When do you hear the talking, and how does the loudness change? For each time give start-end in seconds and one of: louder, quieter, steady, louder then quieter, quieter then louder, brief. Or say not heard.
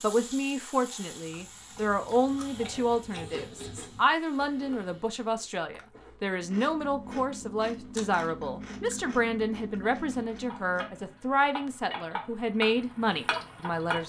0.0-14.0 steady.